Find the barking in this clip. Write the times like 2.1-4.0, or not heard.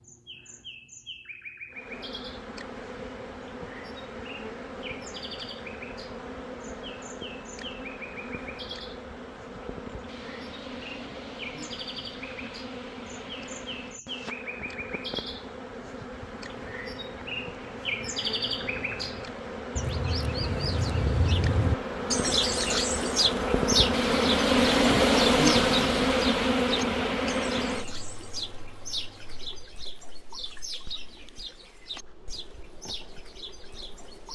not heard.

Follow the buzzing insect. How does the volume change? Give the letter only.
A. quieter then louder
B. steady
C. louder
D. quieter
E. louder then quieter
E.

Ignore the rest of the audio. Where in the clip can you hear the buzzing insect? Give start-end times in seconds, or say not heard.
1.7-34.3.